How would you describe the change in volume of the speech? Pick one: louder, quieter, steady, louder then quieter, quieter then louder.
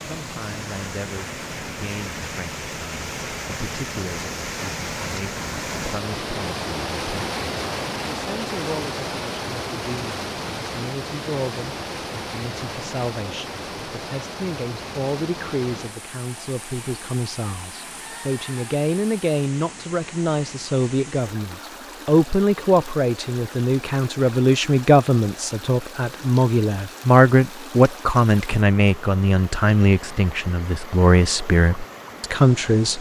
louder.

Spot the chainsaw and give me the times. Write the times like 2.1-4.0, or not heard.
not heard.